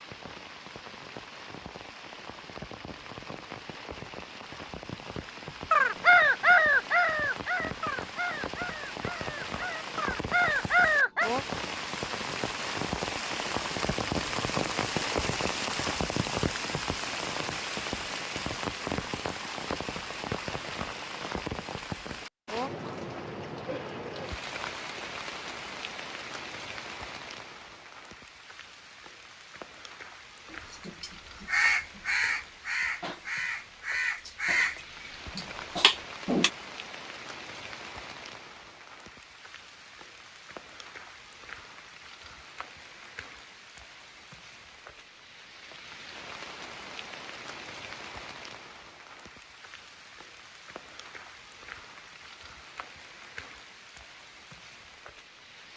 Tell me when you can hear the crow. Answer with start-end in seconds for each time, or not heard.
5.7-11.3, 30.5-36.5.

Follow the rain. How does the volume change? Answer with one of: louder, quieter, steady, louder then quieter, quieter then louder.
louder then quieter.